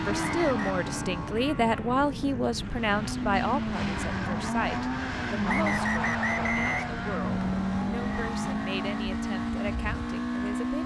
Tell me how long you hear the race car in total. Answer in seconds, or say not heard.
11 s.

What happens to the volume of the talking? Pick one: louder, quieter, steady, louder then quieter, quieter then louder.
quieter.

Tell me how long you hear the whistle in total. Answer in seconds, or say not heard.
2 s.